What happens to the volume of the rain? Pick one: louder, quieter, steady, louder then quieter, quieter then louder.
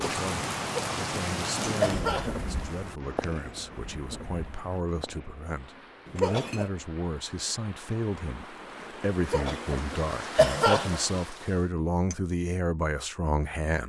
quieter then louder.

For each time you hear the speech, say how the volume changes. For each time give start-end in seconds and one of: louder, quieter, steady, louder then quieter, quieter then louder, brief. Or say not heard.
0.0-13.8 louder.